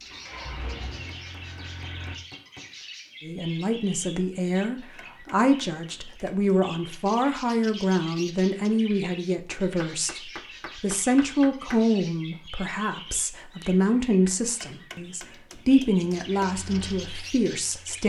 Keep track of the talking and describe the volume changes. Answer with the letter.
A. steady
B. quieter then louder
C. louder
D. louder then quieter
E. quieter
A.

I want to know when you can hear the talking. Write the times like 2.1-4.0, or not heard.
3.2-18.0.